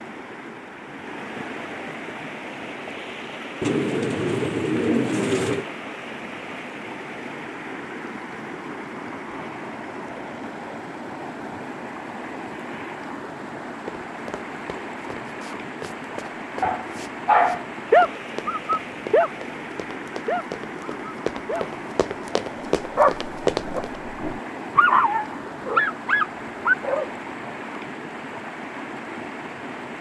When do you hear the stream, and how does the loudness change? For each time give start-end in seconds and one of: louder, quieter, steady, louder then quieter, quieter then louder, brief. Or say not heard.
0.0-29.9 steady.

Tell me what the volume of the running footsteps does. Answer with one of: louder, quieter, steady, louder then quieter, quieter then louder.
louder.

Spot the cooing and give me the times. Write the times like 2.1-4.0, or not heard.
3.6-5.7.